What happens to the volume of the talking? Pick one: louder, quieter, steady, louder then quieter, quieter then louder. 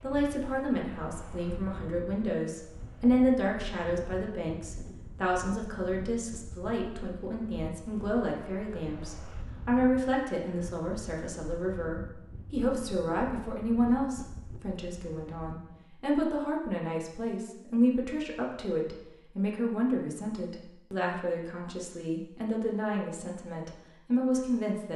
steady.